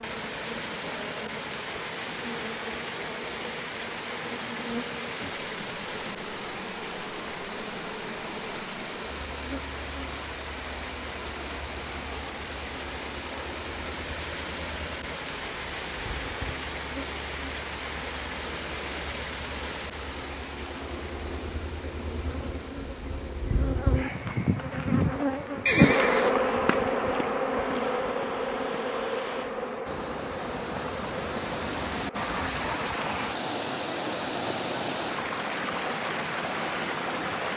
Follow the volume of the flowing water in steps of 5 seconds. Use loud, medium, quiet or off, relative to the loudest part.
loud, loud, loud, loud, medium, quiet, loud, loud.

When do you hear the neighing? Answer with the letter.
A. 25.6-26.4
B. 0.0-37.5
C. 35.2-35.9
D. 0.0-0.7
A.